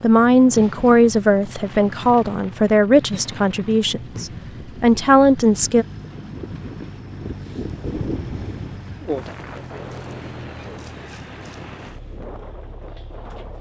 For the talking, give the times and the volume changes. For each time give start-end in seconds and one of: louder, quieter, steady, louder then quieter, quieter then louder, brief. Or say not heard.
0.0-5.8 quieter then louder.